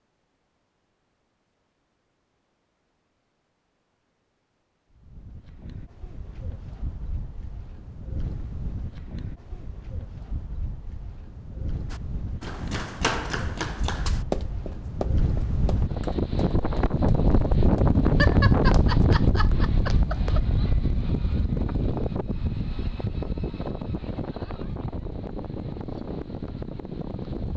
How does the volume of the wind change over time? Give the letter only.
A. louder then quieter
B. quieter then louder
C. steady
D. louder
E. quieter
A.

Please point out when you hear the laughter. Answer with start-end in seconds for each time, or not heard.
18.1-20.4.